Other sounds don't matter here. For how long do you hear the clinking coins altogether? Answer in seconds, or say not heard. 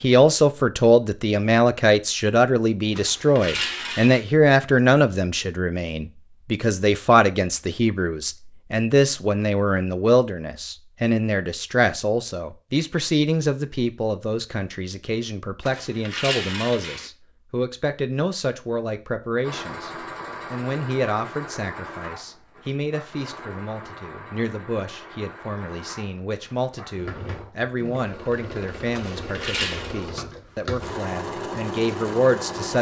4 s.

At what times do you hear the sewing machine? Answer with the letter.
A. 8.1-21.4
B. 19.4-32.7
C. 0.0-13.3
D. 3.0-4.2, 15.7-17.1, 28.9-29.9
B.